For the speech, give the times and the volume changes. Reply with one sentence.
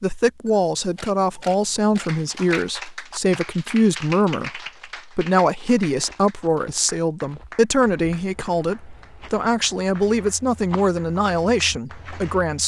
You can hear the speech from 0.0 to 12.6 s, at a steady volume.